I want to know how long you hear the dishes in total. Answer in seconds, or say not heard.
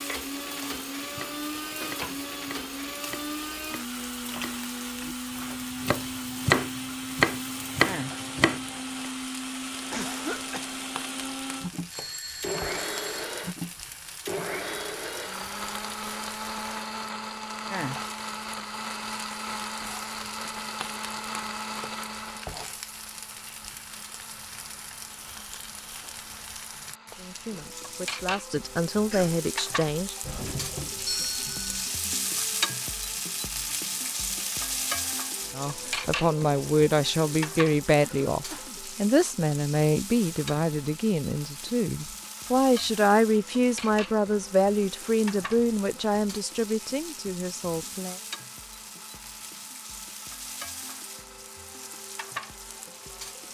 not heard.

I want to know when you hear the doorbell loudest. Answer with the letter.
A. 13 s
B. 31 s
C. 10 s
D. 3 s
B.